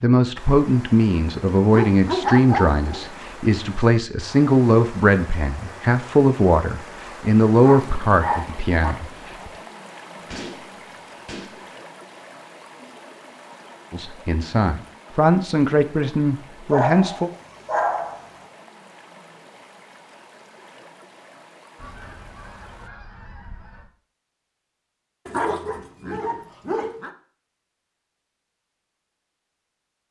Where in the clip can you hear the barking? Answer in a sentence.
The barking can be heard from 1.7 to 3.1 s, from 7.6 to 8.9 s, from 16.7 to 18.3 s and from 25.2 to 27.1 s.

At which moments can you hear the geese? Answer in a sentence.
The geese can be heard from 10.2 to 11.7 s and from 21.8 to 23.9 s.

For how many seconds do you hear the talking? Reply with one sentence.
You can hear the talking for 13 seconds altogether.